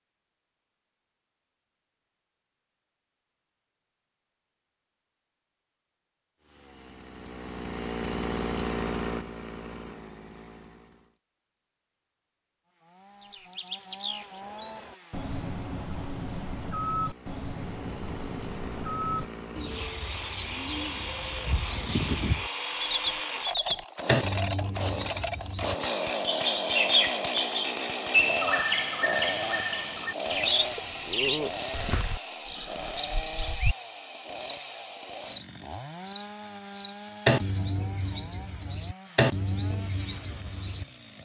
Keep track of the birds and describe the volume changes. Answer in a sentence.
The loudness of the birds goes up.